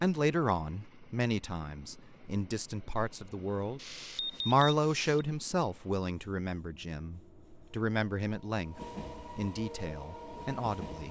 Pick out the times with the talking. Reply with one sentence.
You can hear the talking from 0.0 to 11.0 s.